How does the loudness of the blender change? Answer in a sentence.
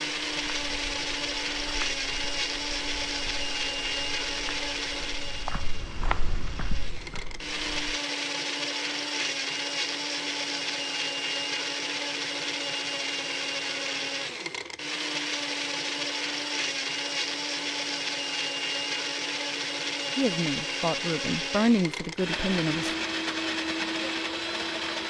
The loudness of the blender stays about the same.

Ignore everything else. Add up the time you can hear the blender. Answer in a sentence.
The blender can be heard for 25 seconds in total.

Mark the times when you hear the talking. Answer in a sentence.
You can hear the talking from 20.1 to 22.9 s.